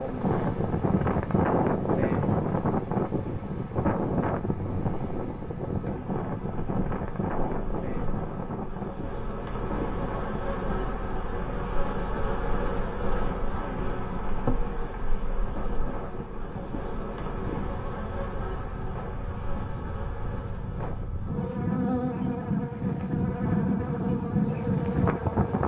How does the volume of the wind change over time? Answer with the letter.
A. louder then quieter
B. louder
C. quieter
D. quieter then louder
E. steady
D.